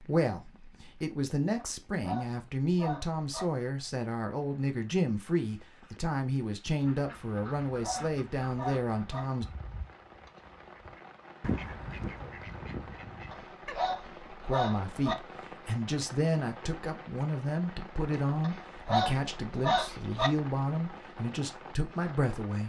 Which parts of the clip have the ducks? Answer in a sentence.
You can hear the ducks from 6.8 to 13.8 s.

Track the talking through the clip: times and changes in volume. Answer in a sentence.
The talking can be heard from 0.0 to 9.4 s, at a steady volume; and from 14.4 to 22.6 s, at a steady volume.